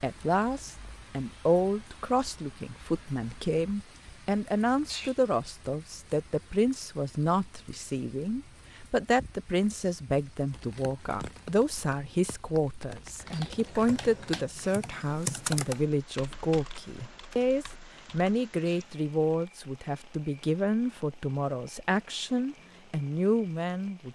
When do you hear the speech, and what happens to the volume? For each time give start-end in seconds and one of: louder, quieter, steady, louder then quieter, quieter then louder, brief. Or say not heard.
0.0-24.1 steady.